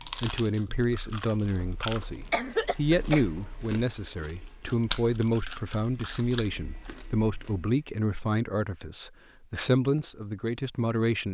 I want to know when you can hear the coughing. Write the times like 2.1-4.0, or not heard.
1.6-3.2.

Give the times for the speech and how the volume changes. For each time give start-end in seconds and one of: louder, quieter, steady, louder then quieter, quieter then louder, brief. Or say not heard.
0.2-11.2 steady.